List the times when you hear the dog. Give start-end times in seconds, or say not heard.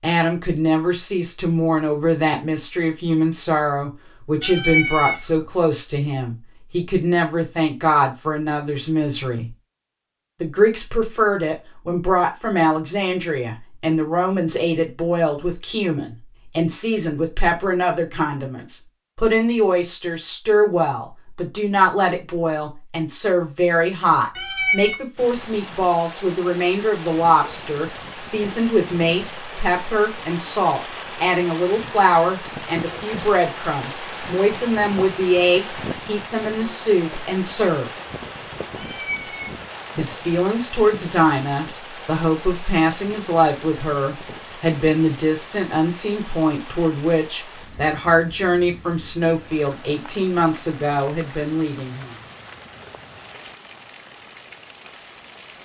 not heard.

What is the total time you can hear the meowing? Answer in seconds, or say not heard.
2 s.